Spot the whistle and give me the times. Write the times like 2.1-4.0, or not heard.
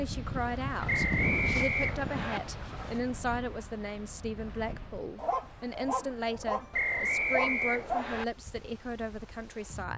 0.8-2.4, 6.7-8.2.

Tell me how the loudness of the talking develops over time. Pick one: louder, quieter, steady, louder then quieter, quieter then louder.
steady.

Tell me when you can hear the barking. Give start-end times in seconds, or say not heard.
0.3-3.1, 5.2-8.1.